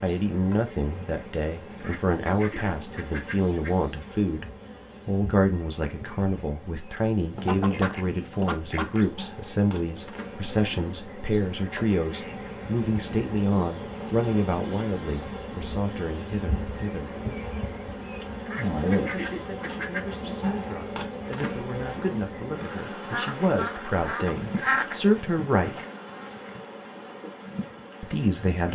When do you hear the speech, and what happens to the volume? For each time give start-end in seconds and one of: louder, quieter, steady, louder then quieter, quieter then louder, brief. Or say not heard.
0.0-17.1 steady
19.0-25.8 louder
28.0-28.6 brief.